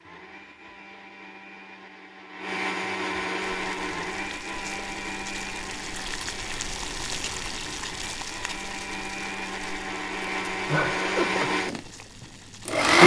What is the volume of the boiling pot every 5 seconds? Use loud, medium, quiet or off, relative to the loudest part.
medium, loud, medium.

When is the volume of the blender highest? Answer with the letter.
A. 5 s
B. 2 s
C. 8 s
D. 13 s
D.